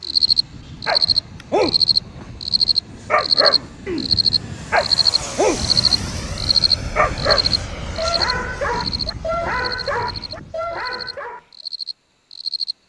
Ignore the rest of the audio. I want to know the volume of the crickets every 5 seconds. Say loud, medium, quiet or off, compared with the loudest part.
loud, loud, quiet.